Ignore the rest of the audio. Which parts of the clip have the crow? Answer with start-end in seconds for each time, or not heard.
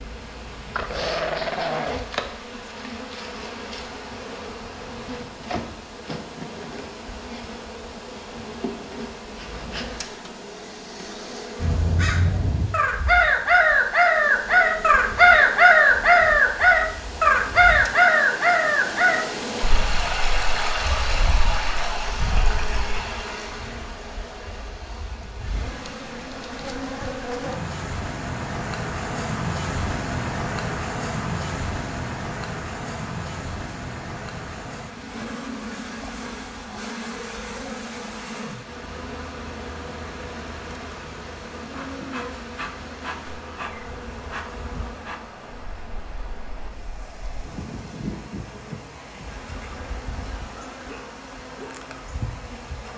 11.6-23.0.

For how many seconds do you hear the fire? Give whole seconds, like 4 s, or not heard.
not heard.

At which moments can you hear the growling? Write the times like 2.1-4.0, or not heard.
0.8-2.1.